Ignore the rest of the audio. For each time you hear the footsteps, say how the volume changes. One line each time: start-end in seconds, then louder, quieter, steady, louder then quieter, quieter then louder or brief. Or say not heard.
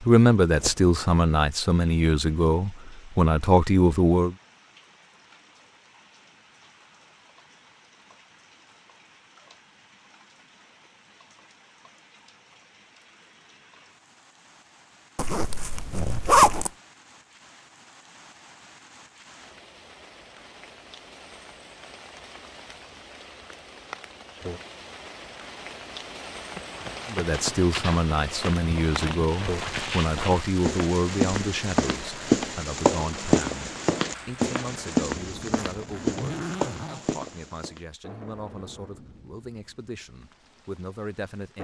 26.6-37.8 louder then quieter.